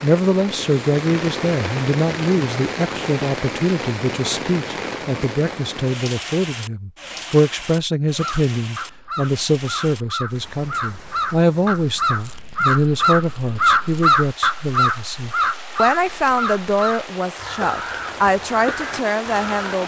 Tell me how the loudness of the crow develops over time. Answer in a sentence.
The volume of the crow goes up, then down.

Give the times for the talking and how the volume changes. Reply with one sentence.
The talking can be heard from 0.0 to 19.8 s, at a steady volume.